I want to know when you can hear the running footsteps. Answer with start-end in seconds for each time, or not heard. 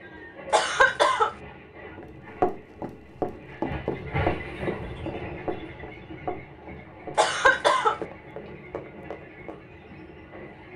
1.9-9.7.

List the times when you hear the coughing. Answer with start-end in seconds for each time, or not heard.
0.5-1.3, 7.2-8.0.